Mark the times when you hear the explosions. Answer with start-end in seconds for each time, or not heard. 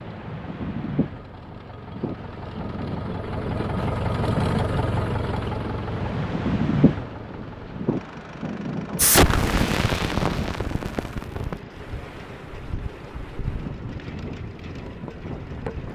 8.9-11.6.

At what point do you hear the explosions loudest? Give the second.
9 s.